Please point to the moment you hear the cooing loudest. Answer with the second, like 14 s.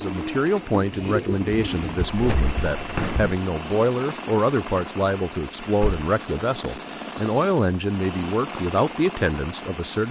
1 s.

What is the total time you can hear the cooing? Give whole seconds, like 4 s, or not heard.
2 s.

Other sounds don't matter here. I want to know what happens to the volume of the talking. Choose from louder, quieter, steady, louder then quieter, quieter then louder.
steady.